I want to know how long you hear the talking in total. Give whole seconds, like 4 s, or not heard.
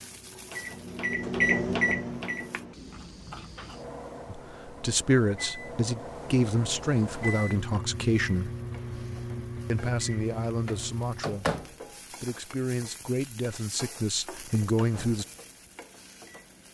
10 s.